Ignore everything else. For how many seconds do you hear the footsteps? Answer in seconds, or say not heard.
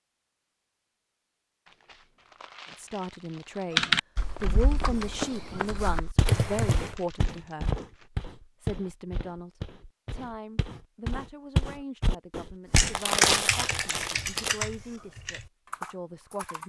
9 s.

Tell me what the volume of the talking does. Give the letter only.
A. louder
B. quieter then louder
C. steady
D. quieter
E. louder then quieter
D.